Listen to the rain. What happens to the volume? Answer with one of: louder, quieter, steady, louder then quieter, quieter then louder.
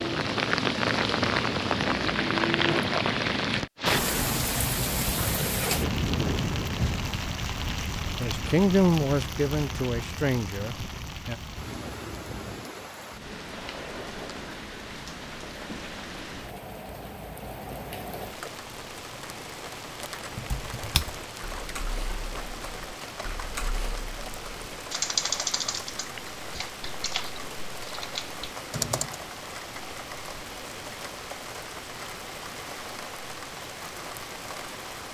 quieter.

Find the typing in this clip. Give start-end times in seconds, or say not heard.
20.3-29.2.